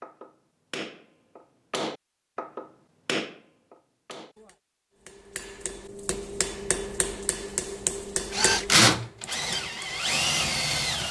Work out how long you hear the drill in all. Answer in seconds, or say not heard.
3 s.